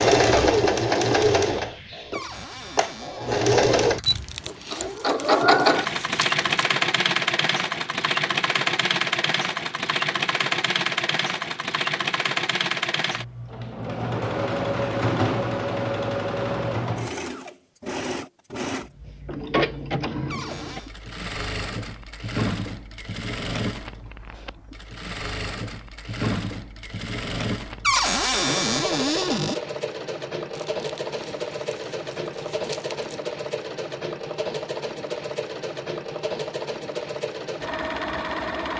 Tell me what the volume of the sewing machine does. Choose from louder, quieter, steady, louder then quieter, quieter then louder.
quieter.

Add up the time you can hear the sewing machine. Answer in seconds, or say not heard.
39 s.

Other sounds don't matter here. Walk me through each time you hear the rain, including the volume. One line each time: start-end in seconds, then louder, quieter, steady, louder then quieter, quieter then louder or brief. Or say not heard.
not heard.